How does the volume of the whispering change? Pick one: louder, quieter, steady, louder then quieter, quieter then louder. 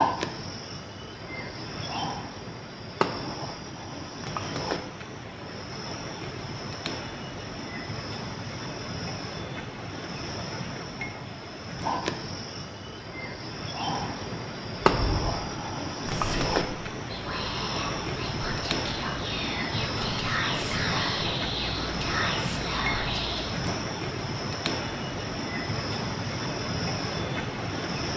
louder.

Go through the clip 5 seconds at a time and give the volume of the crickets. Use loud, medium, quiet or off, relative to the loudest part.
loud, medium, loud, loud, loud, loud.